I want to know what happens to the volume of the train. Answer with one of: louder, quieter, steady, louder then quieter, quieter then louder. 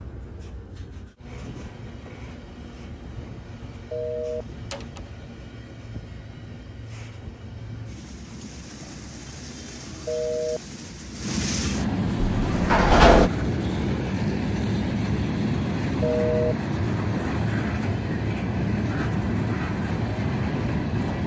louder.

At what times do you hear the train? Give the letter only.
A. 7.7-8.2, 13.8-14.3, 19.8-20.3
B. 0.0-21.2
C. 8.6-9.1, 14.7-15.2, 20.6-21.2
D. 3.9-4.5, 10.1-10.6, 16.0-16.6
B.